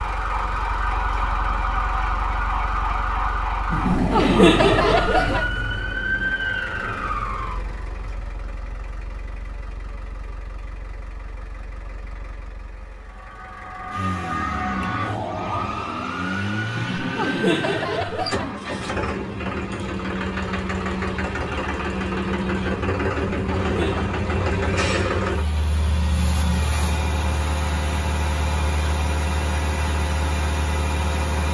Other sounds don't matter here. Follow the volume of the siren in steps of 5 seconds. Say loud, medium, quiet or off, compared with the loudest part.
loud, loud, loud, loud, off, off, off.